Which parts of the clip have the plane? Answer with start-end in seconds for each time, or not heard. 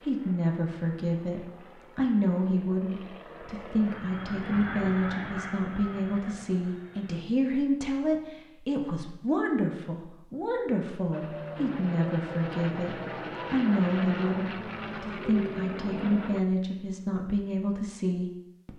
0.0-7.2, 11.1-16.4.